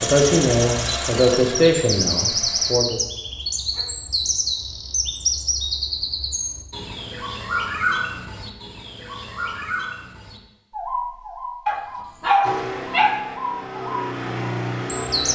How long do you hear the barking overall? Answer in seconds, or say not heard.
2 s.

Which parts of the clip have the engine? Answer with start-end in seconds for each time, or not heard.
0.0-2.8, 12.4-15.2.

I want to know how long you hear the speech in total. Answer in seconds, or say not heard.
3 s.